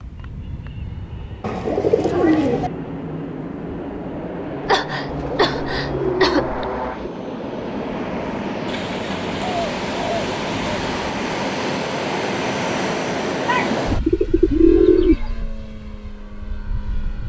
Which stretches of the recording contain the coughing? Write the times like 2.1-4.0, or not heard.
4.7-6.7.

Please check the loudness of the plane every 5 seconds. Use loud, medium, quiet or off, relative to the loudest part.
medium, loud, loud, quiet.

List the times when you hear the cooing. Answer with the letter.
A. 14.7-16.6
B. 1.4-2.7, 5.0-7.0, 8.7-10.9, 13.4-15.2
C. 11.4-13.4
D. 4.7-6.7
B.